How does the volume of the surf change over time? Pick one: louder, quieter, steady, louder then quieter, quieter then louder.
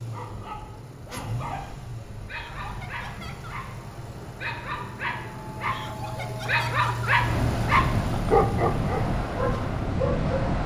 louder.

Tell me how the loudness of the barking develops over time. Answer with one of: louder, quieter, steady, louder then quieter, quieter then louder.
louder.